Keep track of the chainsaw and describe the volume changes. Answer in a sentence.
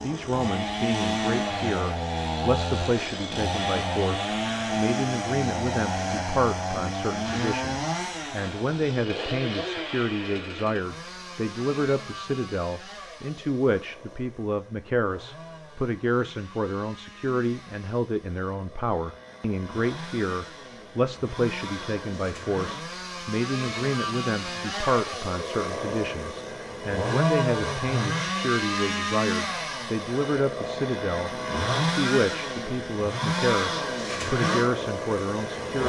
The volume of the chainsaw goes down, then up.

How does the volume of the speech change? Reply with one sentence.
The loudness of the speech stays about the same.